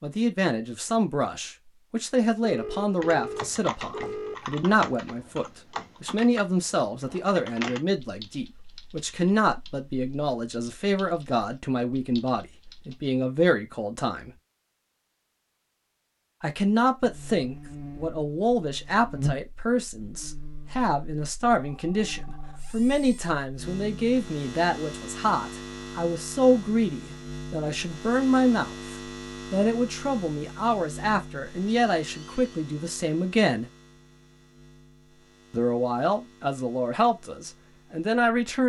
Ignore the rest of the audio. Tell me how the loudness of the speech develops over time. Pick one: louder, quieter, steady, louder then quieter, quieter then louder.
steady.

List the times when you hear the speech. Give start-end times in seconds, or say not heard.
0.0-14.3, 16.4-33.7, 35.5-38.6.